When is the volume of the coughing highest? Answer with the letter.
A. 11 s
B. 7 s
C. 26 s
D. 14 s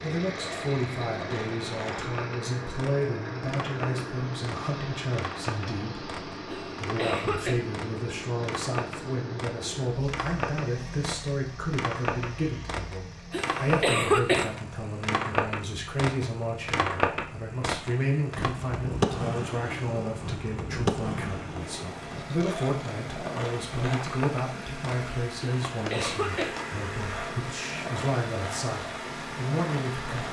D.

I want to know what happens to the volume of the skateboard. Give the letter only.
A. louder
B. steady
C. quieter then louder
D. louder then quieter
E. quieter
D.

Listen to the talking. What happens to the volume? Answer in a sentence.
The loudness of the talking stays about the same.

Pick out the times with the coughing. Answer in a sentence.
The coughing can be heard from 6.5 to 7.5 s, from 13.3 to 14.6 s and from 25.4 to 26.6 s.